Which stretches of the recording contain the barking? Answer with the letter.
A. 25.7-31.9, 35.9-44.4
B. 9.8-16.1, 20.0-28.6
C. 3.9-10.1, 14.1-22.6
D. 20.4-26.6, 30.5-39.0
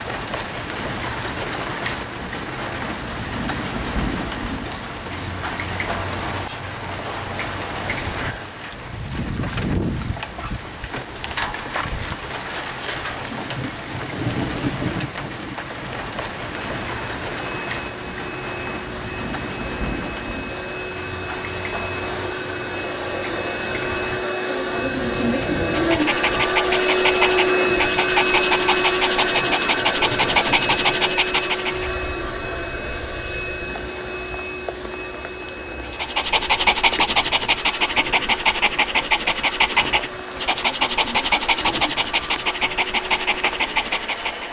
A.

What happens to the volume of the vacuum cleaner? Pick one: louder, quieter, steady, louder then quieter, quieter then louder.
louder then quieter.